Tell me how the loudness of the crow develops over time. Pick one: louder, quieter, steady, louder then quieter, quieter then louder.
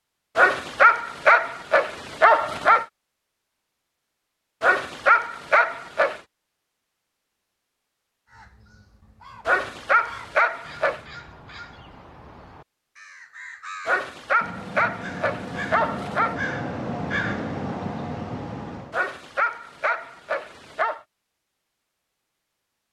louder.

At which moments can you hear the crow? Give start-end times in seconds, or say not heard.
8.2-19.0.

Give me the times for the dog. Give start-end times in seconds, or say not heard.
0.3-2.9, 4.6-6.2, 9.4-11.0, 13.8-16.4, 18.9-21.0.